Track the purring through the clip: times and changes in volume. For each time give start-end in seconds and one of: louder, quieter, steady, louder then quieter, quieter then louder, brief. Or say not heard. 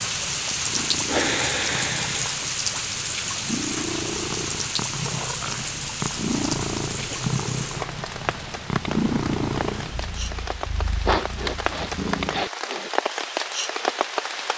0.0-12.4 louder then quieter.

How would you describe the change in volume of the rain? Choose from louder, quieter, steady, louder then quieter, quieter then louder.
quieter then louder.